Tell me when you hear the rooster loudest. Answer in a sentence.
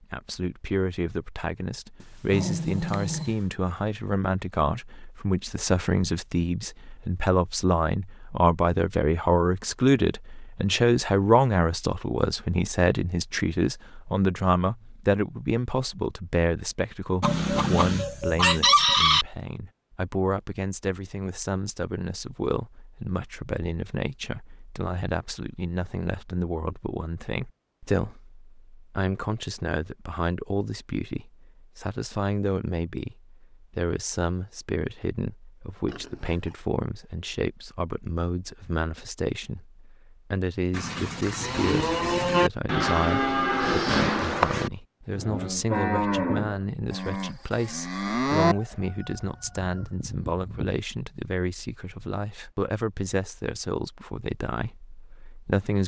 The volume of the rooster peaks at 19 seconds.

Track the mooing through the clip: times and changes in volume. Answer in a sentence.
You can hear the mooing from 40.7 to 48.5 s, getting quieter.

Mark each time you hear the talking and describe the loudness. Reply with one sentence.
The talking can be heard from 0.0 to 55.8 s, getting quieter.